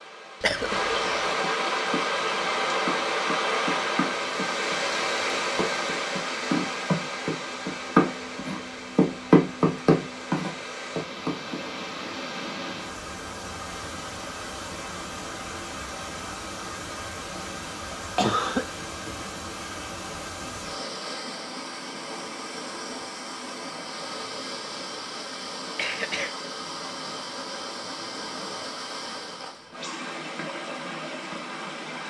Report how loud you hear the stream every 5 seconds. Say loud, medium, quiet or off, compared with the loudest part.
loud, medium, medium, medium, medium, medium, medium.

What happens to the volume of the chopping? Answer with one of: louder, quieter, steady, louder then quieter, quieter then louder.
louder.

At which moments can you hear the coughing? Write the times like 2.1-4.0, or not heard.
0.4-1.4, 18.1-19.2, 25.8-26.4.